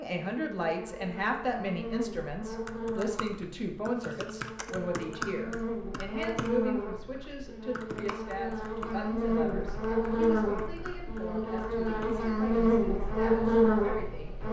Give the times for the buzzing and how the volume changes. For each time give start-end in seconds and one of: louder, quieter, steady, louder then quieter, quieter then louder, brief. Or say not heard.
0.2-14.4 louder.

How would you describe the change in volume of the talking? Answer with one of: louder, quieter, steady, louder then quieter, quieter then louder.
quieter.